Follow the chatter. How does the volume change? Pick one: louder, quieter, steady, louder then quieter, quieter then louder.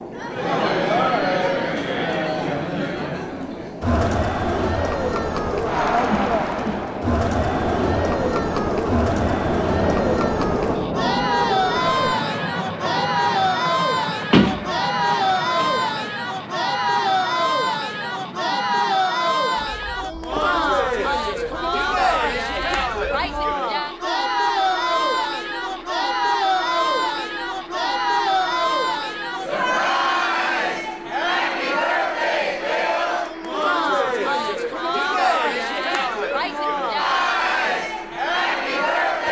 steady.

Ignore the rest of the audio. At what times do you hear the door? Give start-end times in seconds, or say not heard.
14.3-15.9.